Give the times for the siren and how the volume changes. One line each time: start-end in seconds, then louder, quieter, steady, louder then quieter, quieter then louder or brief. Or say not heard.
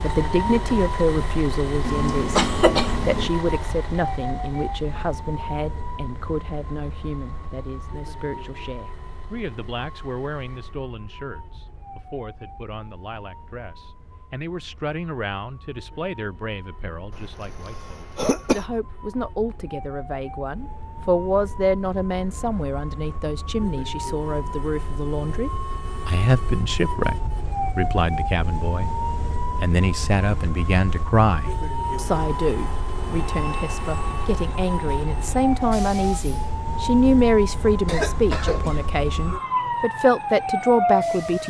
0.0-41.4 quieter then louder.